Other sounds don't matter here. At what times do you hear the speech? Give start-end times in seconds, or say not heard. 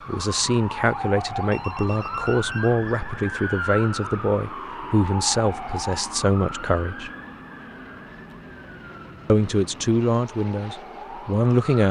0.1-7.1, 9.2-11.8.